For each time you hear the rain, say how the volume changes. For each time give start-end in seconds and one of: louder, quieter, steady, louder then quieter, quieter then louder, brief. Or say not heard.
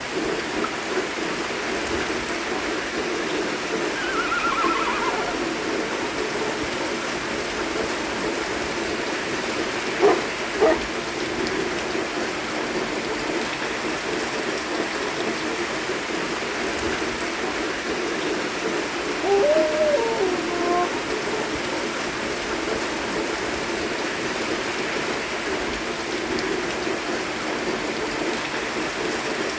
0.0-29.5 steady.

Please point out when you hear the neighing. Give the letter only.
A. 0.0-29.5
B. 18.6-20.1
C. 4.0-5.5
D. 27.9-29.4
C.